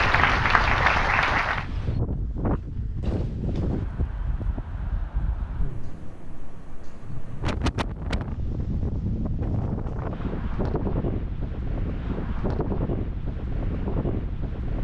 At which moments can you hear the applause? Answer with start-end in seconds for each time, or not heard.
0.0-1.6.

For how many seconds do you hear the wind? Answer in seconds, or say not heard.
15 s.